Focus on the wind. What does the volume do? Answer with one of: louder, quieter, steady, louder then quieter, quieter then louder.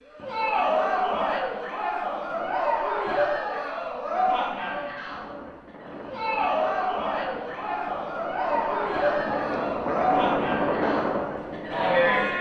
louder.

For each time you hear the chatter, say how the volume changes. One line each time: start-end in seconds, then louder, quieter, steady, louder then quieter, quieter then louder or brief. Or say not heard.
0.1-12.3 steady.